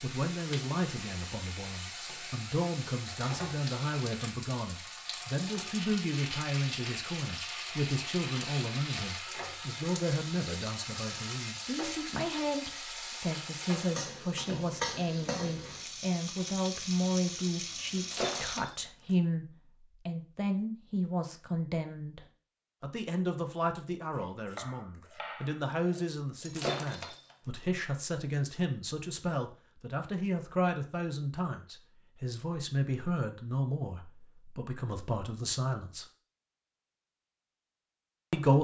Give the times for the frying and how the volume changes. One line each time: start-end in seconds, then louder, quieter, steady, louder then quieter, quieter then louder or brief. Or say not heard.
0.0-18.6 steady.